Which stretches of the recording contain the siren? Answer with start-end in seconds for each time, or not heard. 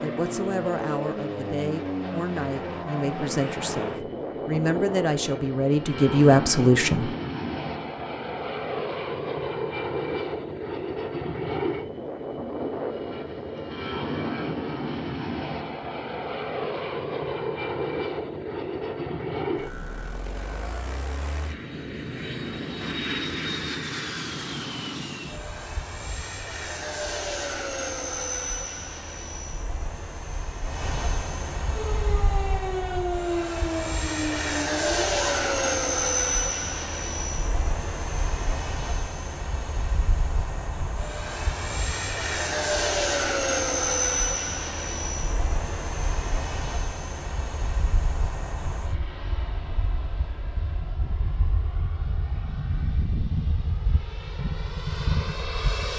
31.7-35.8.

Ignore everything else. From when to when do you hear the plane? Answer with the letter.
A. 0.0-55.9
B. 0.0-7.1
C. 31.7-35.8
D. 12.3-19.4
A.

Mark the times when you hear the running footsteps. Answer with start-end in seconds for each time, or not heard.
not heard.